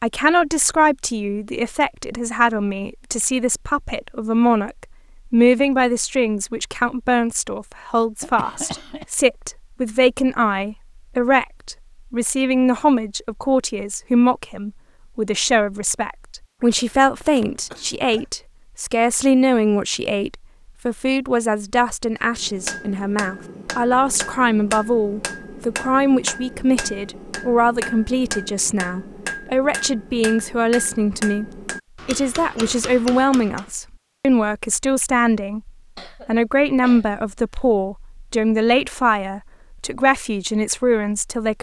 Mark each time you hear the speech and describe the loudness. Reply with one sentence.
The speech can be heard from 0.0 to 41.5 s, at a steady volume.